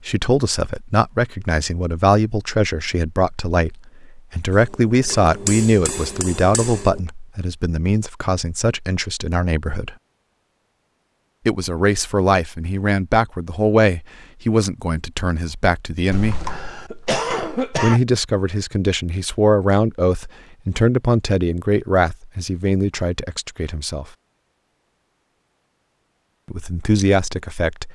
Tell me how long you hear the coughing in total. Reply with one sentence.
You can hear the coughing for 2 seconds altogether.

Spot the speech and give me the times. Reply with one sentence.
You can hear the speech from 0.1 to 9.9 s, from 11.4 to 16.4 s, from 17.8 to 24.1 s and from 26.5 to 27.8 s.